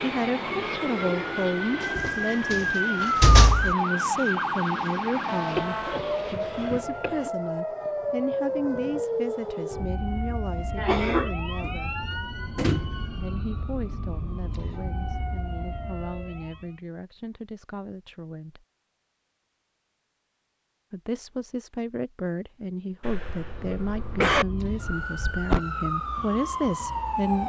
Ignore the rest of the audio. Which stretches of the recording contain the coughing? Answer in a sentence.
You can hear the coughing from 5.5 to 7.3 s, from 10.8 to 11.3 s and from 23.0 to 24.4 s.